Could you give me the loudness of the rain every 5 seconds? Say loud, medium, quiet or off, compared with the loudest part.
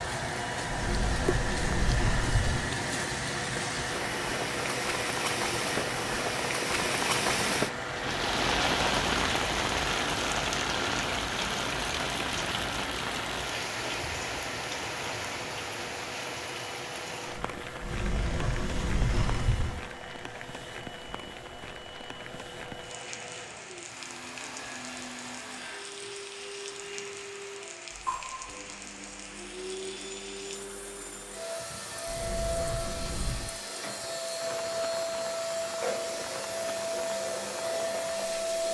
medium, loud, loud, medium, quiet, quiet, quiet, quiet.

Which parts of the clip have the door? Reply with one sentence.
You can hear the door from 0.7 to 2.6 s, from 17.8 to 19.8 s and from 32.0 to 33.5 s.